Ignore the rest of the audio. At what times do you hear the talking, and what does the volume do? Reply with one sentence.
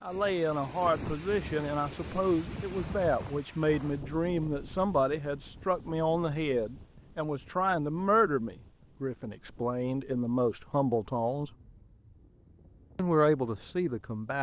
You can hear the talking from 0.0 to 11.5 s, at a steady volume; and briefly from 12.9 to 14.3 s.